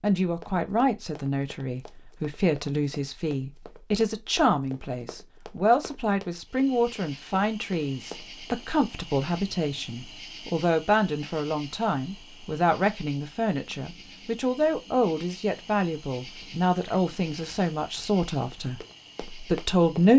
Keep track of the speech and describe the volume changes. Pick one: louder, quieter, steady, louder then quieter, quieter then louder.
steady.